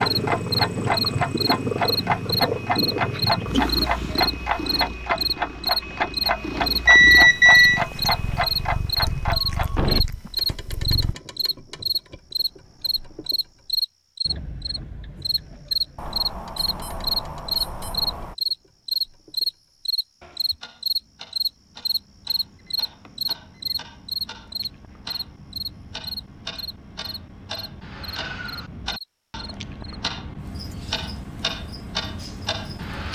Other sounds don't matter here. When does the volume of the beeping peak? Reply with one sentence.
The volume of the beeping peaks at 7 seconds.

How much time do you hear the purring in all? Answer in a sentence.
The purring can be heard for 11 seconds in total.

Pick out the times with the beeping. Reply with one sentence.
You can hear the beeping from 6.8 to 7.8 s, from 15.9 to 18.4 s and from 22.6 to 23.8 s.